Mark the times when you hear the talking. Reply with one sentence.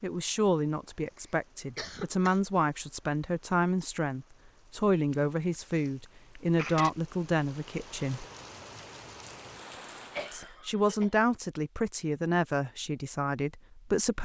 The talking can be heard from 0.0 to 8.2 s and from 10.3 to 14.2 s.